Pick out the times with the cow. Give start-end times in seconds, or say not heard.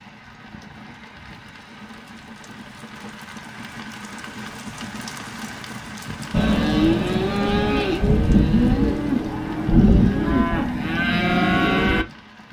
6.3-12.1.